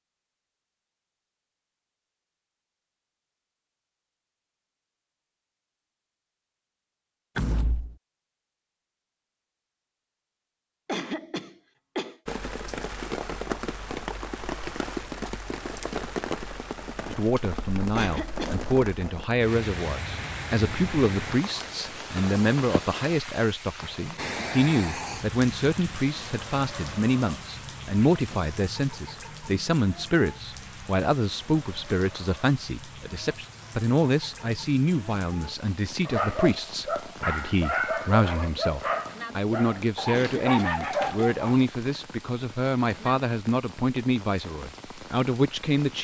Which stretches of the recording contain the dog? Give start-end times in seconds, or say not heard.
36.0-41.6.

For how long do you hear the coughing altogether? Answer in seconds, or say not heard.
3 s.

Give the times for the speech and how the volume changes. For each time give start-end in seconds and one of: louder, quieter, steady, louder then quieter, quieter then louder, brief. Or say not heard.
17.1-45.9 steady.